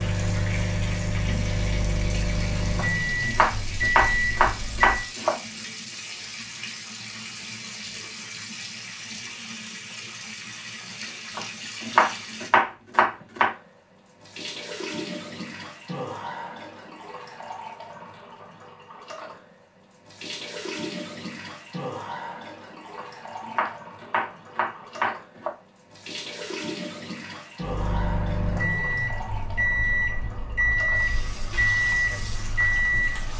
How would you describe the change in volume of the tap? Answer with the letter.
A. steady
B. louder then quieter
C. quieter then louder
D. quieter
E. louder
A.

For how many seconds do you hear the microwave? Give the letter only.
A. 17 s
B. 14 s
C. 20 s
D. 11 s
D.